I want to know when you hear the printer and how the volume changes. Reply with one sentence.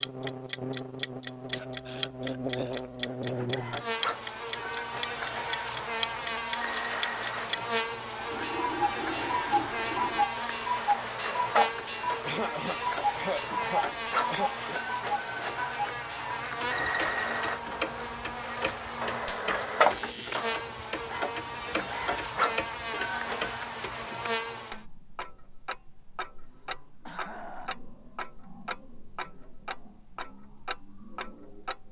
The printer can be heard from 3.1 to 23.6 s, getting louder.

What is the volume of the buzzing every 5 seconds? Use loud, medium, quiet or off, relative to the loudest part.
loud, loud, loud, loud, loud, off, off.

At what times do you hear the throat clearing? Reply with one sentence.
You can hear the throat clearing from 1.5 to 2.9 s, from 12.2 to 14.8 s and from 26.4 to 27.8 s.